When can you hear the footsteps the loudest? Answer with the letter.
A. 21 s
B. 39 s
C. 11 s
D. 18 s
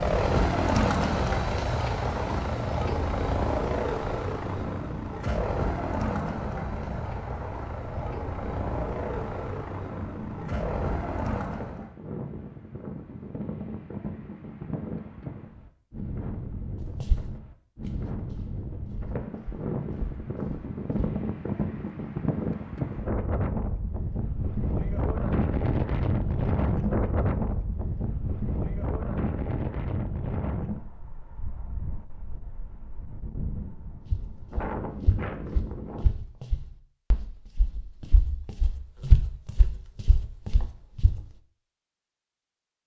B.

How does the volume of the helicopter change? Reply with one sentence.
The loudness of the helicopter goes down.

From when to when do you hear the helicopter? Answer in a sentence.
The helicopter can be heard from 0.0 to 11.9 s.